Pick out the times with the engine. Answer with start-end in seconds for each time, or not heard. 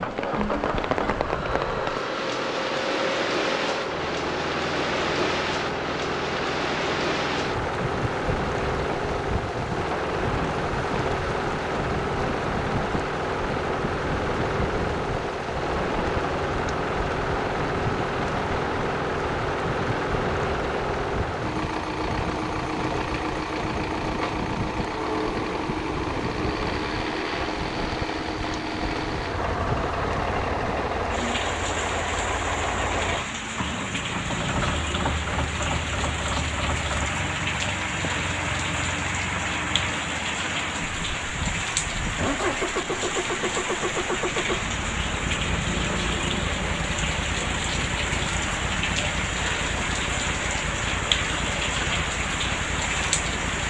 0.0-53.6.